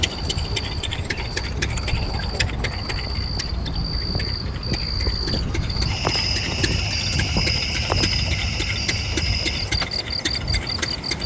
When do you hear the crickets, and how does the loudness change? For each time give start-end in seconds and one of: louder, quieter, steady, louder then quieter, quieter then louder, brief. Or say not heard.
0.0-11.2 louder.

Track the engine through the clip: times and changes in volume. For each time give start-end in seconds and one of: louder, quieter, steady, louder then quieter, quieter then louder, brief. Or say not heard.
0.0-11.2 quieter then louder.